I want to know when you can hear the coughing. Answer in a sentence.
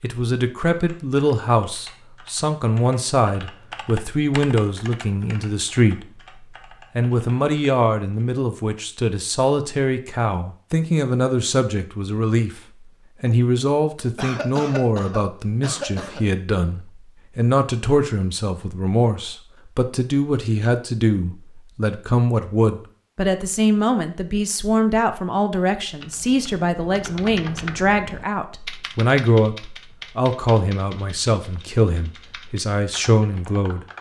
You can hear the coughing from 14.2 to 16.2 s.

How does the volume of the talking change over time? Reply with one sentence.
The volume of the talking stays about the same.